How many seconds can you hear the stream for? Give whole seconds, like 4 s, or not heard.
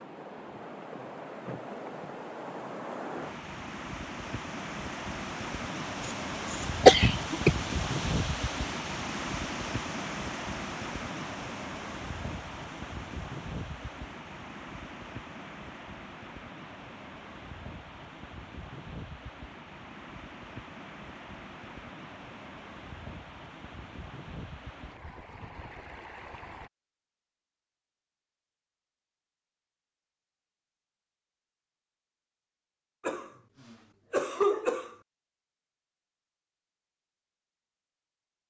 27 s.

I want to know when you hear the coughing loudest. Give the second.
7 s.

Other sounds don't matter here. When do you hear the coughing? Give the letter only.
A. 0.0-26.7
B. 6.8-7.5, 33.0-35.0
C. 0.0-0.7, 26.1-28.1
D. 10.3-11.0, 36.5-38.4
B.